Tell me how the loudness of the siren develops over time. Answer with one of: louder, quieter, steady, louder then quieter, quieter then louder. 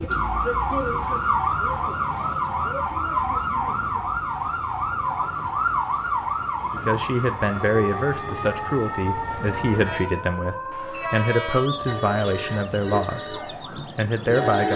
quieter.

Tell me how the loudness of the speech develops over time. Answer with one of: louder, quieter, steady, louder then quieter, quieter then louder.
steady.